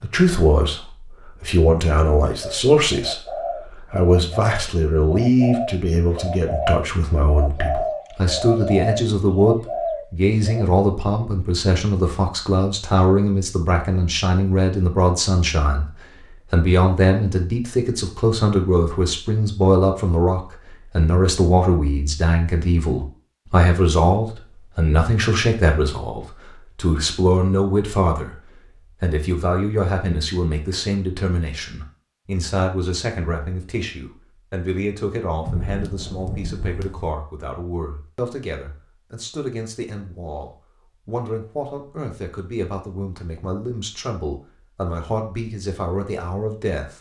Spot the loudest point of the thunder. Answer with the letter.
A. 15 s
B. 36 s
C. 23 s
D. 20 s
B.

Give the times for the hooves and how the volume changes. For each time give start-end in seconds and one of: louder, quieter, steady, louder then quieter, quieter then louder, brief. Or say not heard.
not heard.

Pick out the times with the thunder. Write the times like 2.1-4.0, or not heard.
35.4-37.1.